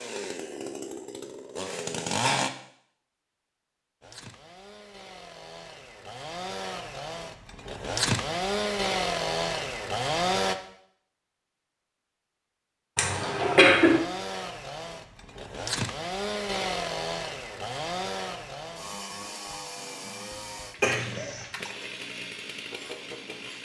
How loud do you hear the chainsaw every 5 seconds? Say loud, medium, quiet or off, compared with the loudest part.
loud, loud, loud, loud, medium.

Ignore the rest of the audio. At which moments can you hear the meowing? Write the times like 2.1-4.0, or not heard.
not heard.